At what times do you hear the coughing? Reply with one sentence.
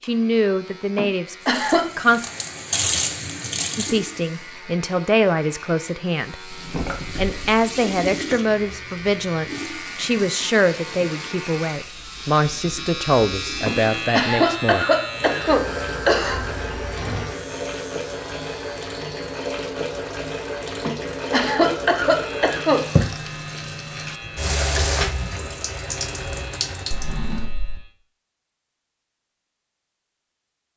You can hear the coughing from 0.9 to 1.9 s, from 13.7 to 16.4 s and from 20.9 to 22.9 s.